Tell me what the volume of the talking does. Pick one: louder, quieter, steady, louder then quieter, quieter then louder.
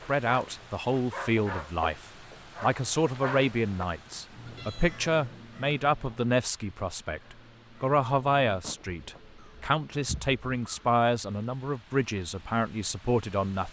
steady.